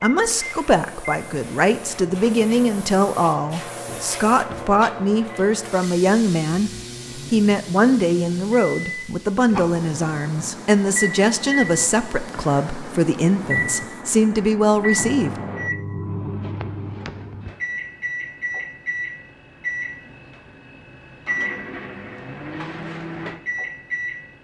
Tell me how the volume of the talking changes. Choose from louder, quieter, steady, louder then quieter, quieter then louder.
steady.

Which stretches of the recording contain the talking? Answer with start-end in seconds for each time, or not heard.
0.0-15.3.